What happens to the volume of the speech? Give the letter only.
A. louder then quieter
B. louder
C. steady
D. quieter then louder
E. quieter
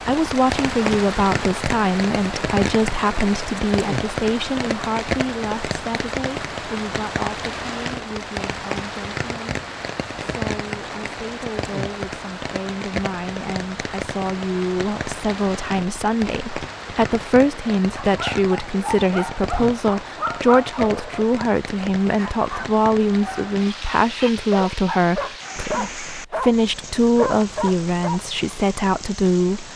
D.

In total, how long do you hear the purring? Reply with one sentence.
You can't hear the purring here.